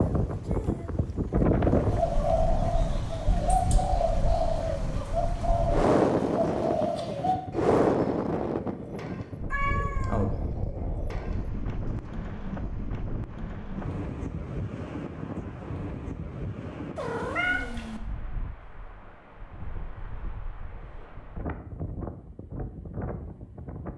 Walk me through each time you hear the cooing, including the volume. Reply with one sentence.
You can hear the cooing from 1.6 to 12.2 s, getting quieter.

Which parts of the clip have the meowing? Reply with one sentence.
You can hear the meowing from 9.5 to 10.2 s and from 16.9 to 18.0 s.